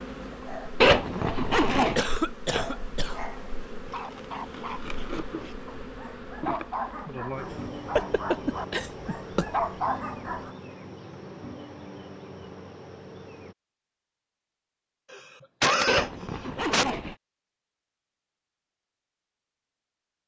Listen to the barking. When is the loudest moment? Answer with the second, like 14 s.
10 s.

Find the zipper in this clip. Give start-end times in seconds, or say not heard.
0.8-2.0, 15.8-17.1.